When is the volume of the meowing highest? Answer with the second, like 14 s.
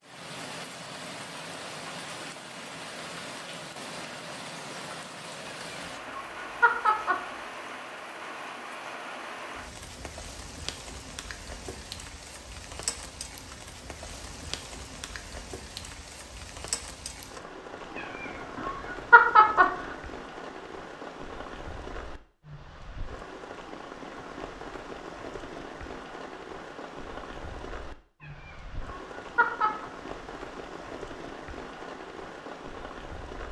19 s.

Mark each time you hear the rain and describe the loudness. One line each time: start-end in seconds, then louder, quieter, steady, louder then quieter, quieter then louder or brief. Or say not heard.
0.0-33.4 steady.